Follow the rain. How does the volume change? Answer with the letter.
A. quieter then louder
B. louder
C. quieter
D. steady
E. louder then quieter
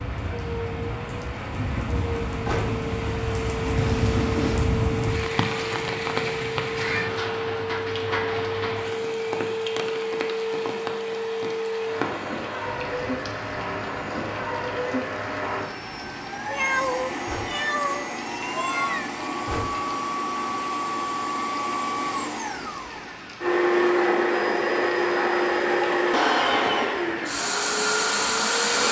C.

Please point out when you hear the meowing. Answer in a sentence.
You can hear the meowing from 3.8 to 4.7 s and from 16.4 to 19.1 s.